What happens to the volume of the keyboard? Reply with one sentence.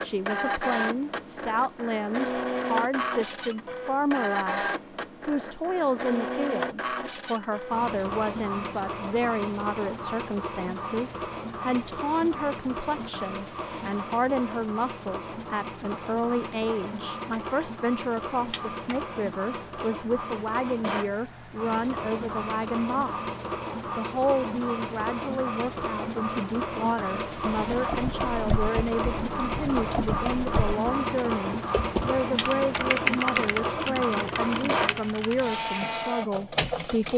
The loudness of the keyboard goes up, then down.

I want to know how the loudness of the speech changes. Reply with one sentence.
The volume of the speech stays about the same.